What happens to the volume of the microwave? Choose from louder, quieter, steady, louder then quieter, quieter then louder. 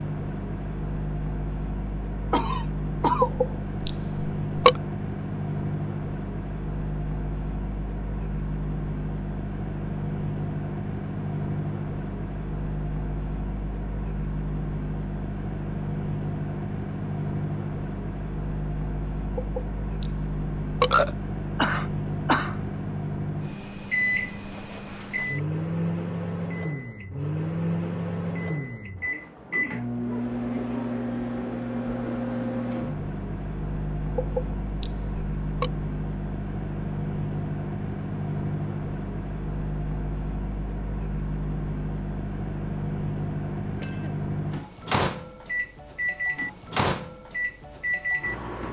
steady.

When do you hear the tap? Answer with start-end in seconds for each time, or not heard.
not heard.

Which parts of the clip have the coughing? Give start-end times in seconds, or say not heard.
2.3-3.3, 21.6-22.6, 43.8-44.2.